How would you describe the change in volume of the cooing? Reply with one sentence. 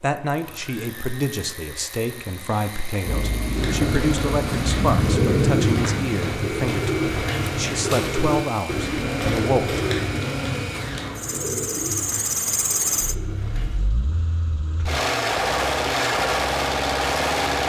The loudness of the cooing goes down.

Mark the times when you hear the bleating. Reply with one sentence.
The bleating can't be heard in this clip.